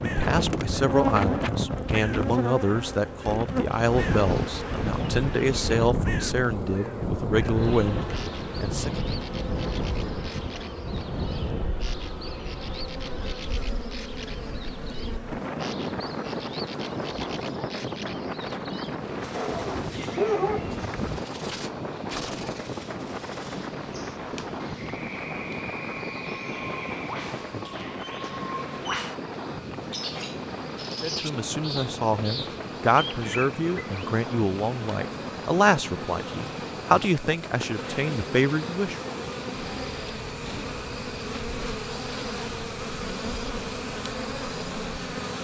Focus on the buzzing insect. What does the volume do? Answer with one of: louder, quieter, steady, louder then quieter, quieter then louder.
quieter then louder.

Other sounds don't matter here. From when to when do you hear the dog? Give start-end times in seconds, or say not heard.
19.3-21.2.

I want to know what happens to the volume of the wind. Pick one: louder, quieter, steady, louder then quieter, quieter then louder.
quieter.